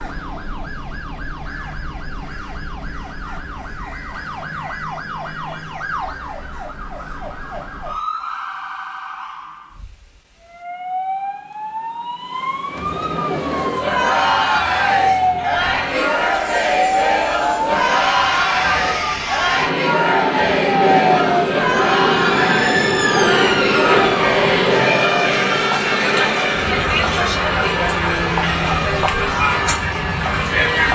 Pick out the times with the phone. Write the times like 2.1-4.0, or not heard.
not heard.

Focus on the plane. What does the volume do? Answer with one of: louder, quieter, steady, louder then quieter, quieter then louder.
louder then quieter.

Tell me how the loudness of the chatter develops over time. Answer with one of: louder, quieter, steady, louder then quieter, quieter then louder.
steady.